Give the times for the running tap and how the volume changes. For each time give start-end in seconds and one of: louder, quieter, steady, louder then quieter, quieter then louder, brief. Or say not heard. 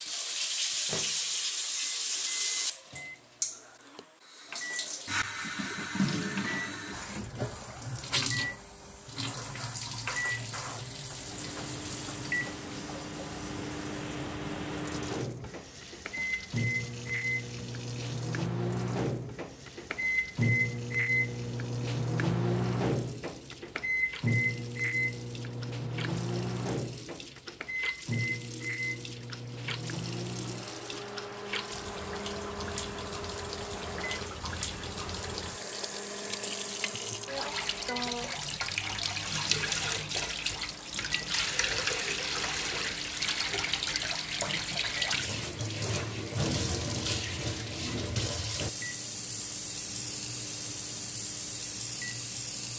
0.0-52.7 quieter then louder.